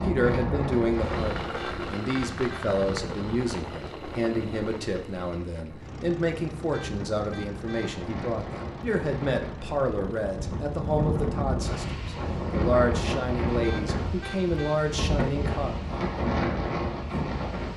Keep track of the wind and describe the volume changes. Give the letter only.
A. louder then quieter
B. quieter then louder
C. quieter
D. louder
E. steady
B.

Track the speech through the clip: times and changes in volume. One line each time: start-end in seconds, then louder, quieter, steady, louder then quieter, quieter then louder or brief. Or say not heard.
0.0-15.8 steady.